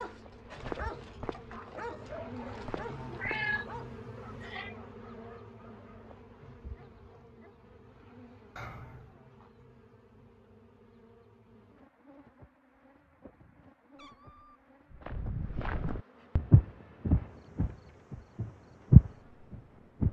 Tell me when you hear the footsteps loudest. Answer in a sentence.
The volume of the footsteps peaks at 19 seconds.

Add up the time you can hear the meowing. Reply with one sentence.
You can hear the meowing for 3 seconds altogether.